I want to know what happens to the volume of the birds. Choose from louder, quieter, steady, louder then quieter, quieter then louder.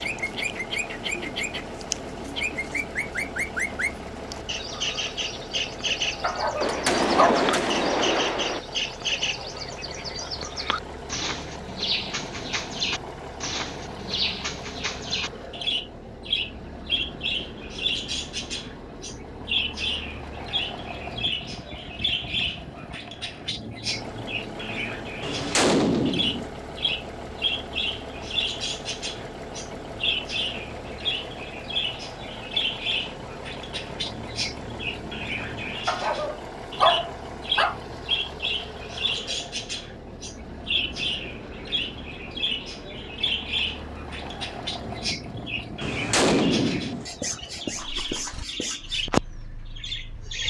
steady.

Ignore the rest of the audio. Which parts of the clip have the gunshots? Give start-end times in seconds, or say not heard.
6.6-8.6, 25.2-26.5, 45.8-47.0.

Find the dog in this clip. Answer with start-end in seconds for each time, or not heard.
6.2-7.5, 35.9-37.8.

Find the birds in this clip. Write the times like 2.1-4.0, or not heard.
0.0-50.4.